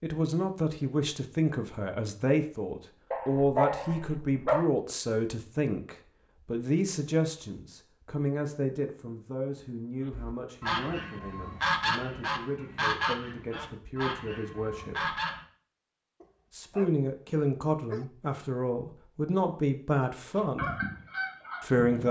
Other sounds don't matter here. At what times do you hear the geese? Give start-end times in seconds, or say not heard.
10.1-15.4, 20.4-22.0.